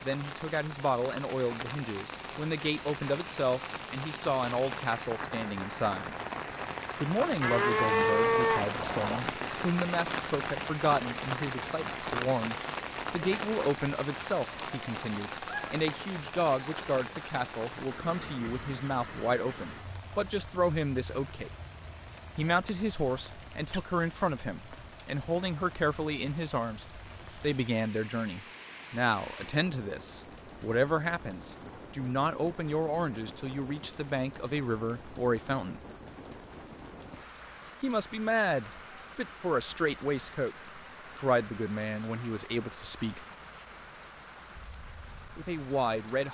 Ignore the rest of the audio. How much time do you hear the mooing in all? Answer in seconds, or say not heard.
2 s.